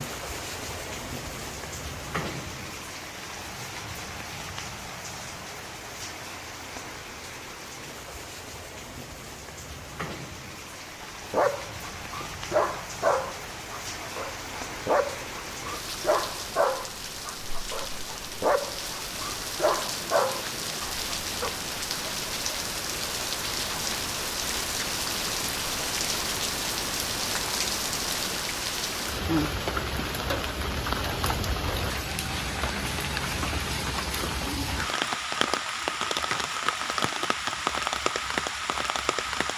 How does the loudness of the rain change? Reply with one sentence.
The loudness of the rain goes up.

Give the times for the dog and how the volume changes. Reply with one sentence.
The dog can be heard from 11.0 to 21.6 s, at a steady volume.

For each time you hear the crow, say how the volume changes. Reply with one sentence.
You can't hear the crow here.